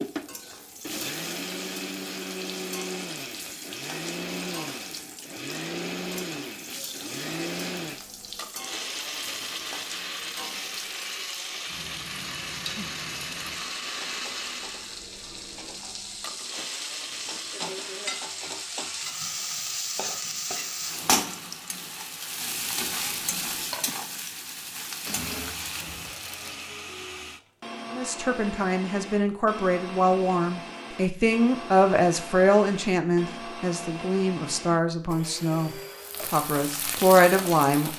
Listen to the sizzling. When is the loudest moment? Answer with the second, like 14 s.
21 s.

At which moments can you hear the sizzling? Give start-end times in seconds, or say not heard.
0.0-26.8, 36.0-37.9.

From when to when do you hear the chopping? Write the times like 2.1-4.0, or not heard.
not heard.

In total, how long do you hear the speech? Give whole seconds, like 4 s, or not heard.
10 s.